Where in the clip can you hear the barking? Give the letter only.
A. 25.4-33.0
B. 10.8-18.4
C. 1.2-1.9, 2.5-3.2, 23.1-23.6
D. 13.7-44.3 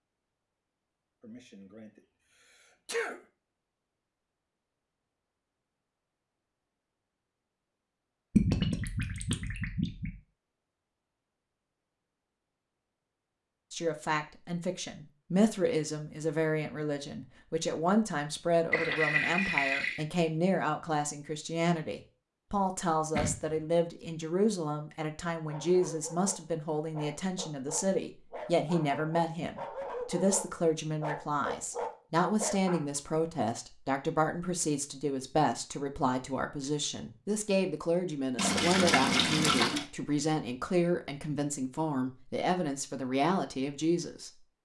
A.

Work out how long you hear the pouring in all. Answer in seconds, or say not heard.
5 s.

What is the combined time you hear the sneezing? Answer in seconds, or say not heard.
2 s.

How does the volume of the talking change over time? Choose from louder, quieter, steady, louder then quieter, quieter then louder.
steady.